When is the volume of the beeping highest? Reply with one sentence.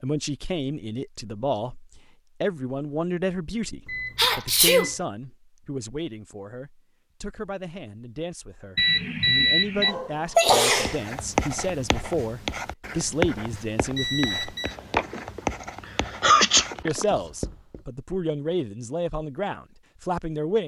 The volume of the beeping peaks at 9 seconds.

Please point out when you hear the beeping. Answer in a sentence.
The beeping can be heard from 3.9 to 5.0 s, from 8.8 to 9.9 s and from 13.9 to 14.8 s.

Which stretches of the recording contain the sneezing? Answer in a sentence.
The sneezing can be heard from 4.2 to 4.9 s, from 9.8 to 11.0 s, from 14.9 to 15.4 s and from 16.1 to 17.1 s.